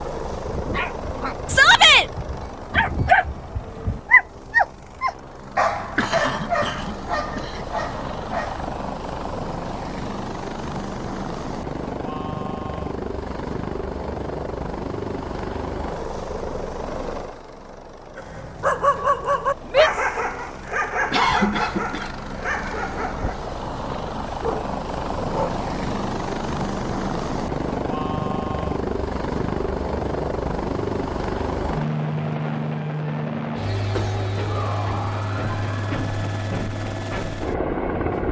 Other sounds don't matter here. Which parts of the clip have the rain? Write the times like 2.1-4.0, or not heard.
not heard.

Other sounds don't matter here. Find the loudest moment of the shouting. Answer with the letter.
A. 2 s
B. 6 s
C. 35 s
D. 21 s
A.